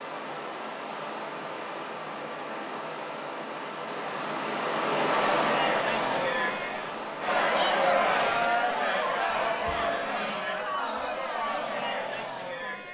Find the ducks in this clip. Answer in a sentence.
The ducks can't be heard in this clip.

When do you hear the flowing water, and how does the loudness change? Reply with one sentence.
You can hear the flowing water from 0.0 to 8.6 s, getting louder then quieter.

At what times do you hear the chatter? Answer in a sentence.
You can hear the chatter from 5.1 to 12.8 s.